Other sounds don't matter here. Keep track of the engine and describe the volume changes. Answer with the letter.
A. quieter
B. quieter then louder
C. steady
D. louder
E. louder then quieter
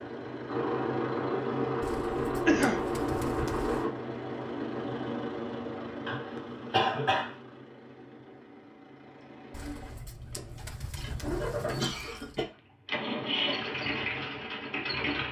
B.